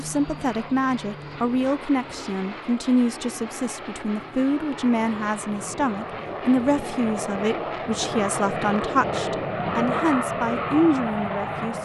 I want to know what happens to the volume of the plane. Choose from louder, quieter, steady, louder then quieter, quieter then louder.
louder.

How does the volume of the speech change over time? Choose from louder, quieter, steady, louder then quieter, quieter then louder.
steady.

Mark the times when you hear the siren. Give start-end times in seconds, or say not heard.
not heard.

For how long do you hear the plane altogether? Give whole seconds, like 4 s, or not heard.
12 s.